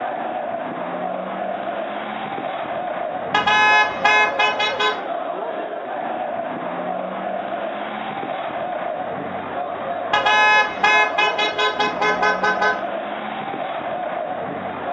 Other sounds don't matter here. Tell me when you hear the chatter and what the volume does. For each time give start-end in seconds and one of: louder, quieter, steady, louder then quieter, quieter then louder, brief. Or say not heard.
0.0-14.8 steady.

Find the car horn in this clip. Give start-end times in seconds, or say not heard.
3.3-5.0, 10.1-12.8.